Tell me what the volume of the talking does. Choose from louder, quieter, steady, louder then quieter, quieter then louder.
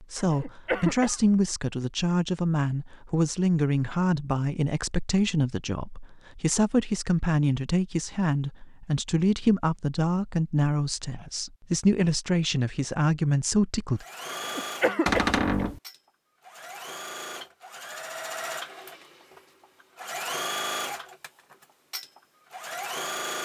steady.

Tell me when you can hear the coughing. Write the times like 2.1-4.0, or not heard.
0.1-1.2, 14.3-15.6.